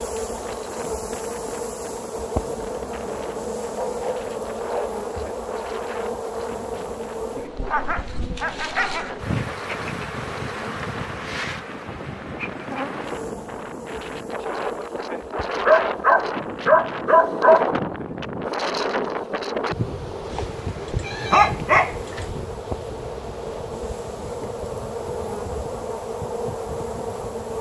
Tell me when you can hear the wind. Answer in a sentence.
The wind can be heard from 0.0 to 27.5 s.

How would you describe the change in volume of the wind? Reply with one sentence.
The loudness of the wind goes up, then down.